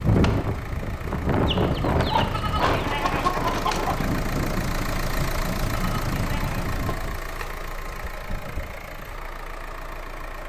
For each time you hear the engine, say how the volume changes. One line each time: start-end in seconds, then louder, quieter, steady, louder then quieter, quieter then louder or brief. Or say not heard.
0.0-10.4 louder then quieter.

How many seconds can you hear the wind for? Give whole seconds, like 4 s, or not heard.
7 s.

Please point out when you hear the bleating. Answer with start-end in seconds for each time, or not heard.
2.3-3.4, 5.8-6.7.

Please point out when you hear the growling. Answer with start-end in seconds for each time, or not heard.
not heard.